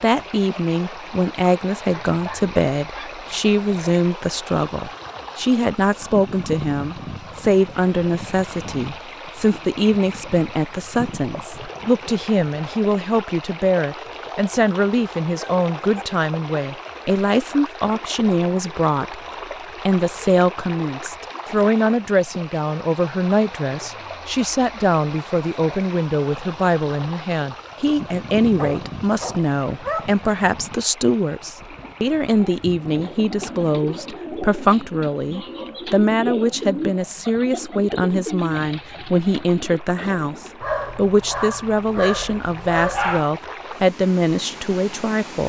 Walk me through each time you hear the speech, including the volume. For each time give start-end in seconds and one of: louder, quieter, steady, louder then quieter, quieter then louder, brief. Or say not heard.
0.0-19.2 steady
19.9-45.4 steady.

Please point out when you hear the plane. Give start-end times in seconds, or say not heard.
not heard.